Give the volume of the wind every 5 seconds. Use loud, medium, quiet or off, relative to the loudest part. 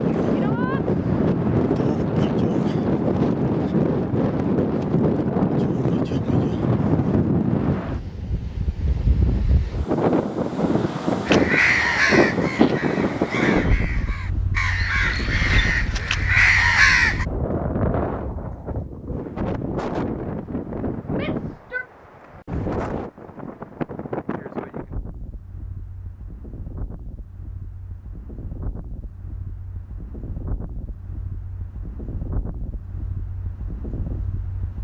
loud, loud, loud, medium, medium, quiet, quiet.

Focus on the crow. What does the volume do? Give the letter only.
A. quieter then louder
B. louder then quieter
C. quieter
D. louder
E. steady
A.